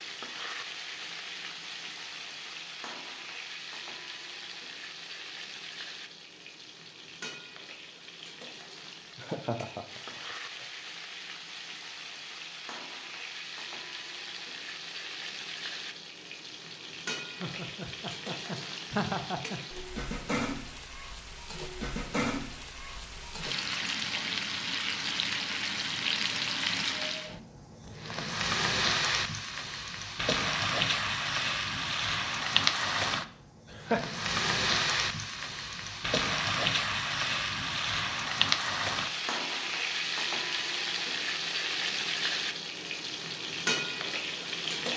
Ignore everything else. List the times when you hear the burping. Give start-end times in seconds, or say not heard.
not heard.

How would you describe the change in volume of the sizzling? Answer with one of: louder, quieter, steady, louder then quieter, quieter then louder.
louder.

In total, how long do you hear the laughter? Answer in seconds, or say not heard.
4 s.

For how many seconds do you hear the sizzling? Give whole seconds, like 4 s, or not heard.
45 s.